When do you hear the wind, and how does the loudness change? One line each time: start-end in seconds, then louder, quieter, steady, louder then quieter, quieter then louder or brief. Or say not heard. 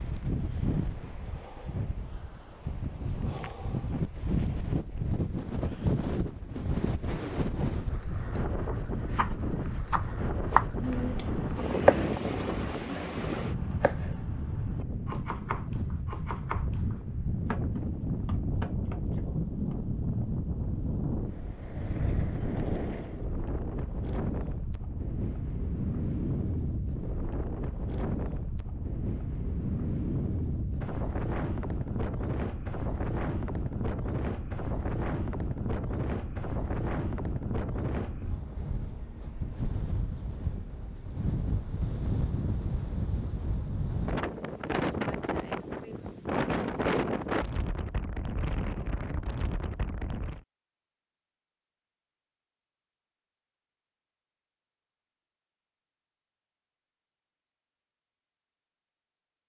0.0-50.4 steady.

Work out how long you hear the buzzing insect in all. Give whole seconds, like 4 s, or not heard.
not heard.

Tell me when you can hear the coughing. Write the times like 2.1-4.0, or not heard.
not heard.